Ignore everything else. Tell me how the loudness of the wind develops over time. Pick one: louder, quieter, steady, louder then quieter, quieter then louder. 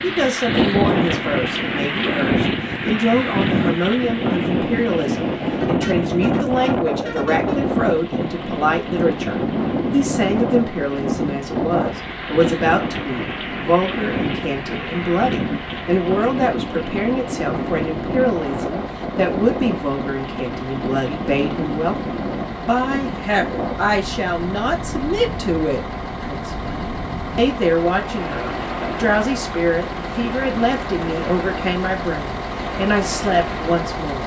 quieter.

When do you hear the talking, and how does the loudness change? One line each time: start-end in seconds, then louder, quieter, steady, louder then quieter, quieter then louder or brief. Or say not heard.
0.0-34.2 steady.